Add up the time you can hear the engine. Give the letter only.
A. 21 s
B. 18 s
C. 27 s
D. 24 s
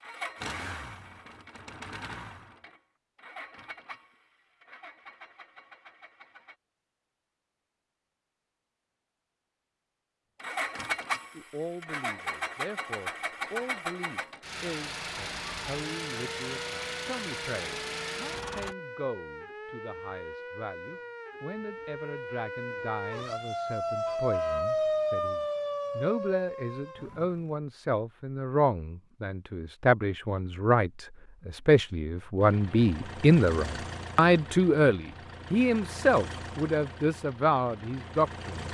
A.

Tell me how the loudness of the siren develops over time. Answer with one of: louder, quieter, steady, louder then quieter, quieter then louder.
louder.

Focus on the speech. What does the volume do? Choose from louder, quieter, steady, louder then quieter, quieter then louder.
louder.